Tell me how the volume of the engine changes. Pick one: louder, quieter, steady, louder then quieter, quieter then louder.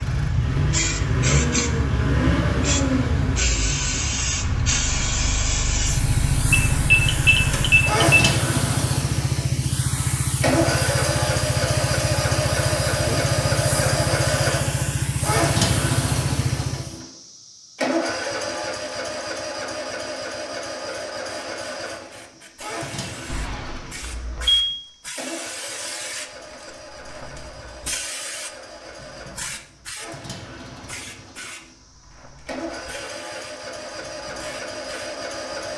quieter.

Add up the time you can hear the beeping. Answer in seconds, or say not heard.
3 s.